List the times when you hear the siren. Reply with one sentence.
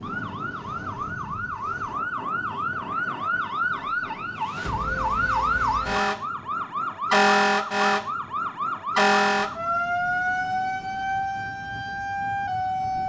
You can hear the siren from 0.0 to 13.0 s.